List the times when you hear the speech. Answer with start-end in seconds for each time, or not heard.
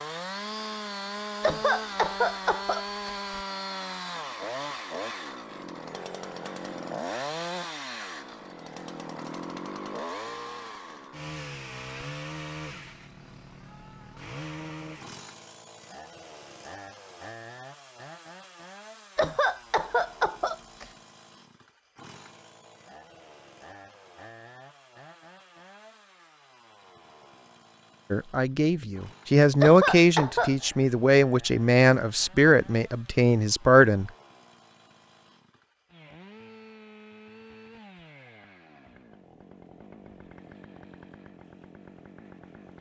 28.1-34.1.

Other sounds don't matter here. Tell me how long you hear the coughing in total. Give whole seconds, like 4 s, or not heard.
5 s.